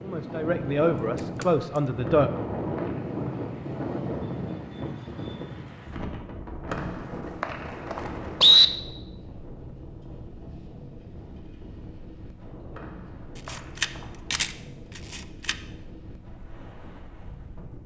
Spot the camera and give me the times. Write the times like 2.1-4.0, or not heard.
1.1-1.8, 13.3-15.6.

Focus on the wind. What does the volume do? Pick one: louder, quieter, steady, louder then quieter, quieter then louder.
quieter.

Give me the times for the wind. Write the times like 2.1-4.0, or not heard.
0.0-17.8.